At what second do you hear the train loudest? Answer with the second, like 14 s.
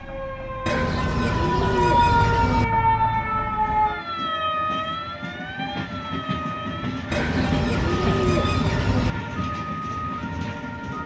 8 s.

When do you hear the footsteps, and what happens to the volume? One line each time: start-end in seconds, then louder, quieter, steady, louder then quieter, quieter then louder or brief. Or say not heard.
not heard.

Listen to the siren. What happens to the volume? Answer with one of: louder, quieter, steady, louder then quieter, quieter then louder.
quieter.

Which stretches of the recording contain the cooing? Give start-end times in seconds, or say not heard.
0.7-2.6, 7.1-9.2.